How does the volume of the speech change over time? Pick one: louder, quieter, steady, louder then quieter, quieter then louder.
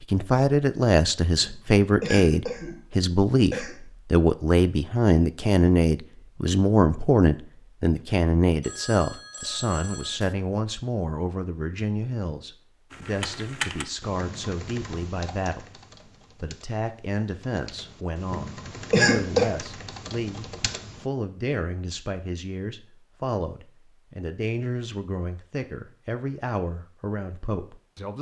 quieter.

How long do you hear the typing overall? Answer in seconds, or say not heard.
8 s.